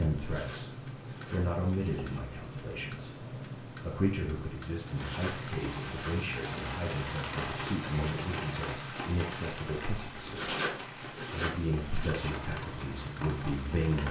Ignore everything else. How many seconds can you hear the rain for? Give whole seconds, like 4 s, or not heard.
9 s.